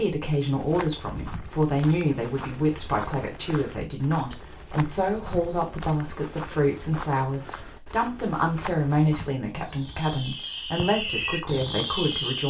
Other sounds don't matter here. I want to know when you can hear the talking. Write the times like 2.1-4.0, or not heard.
0.0-12.4.